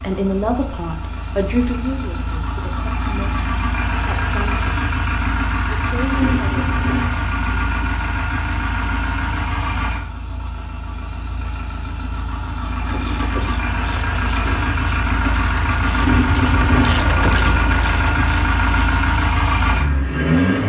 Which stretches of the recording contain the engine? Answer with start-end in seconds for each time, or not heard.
0.0-20.6.